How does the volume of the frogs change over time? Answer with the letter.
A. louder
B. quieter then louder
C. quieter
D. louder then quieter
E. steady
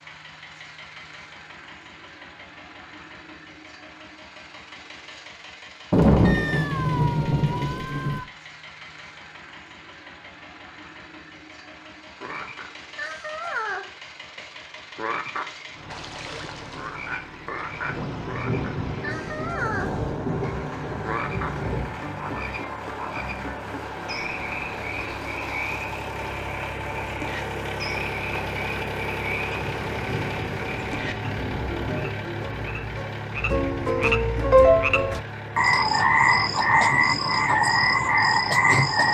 A.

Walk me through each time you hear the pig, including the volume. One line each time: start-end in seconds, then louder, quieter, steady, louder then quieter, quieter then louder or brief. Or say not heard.
not heard.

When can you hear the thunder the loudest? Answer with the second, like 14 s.
6 s.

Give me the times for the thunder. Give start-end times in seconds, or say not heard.
5.9-8.2, 17.9-22.0, 29.5-32.1.